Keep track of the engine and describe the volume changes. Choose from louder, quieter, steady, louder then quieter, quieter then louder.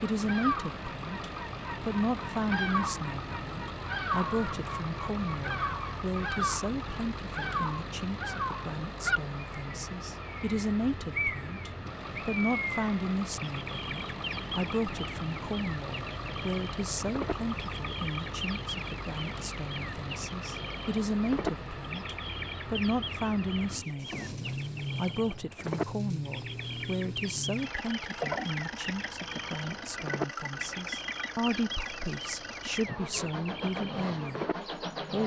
steady.